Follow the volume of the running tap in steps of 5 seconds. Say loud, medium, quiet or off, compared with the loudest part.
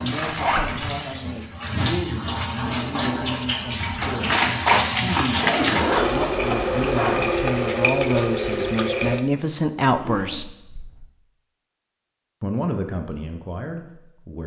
loud, loud, off.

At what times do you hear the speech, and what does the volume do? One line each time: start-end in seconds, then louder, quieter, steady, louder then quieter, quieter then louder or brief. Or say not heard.
0.0-10.4 louder
12.4-14.4 brief.